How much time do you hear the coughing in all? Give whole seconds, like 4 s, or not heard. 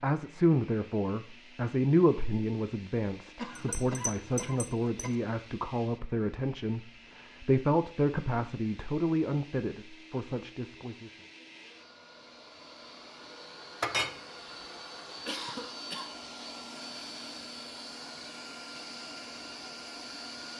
3 s.